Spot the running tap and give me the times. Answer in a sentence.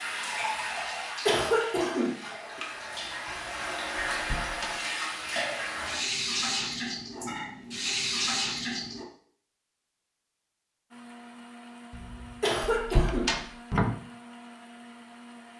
You can hear the running tap from 0.0 to 9.1 s.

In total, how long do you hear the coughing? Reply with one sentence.
You can hear the coughing for 3 seconds altogether.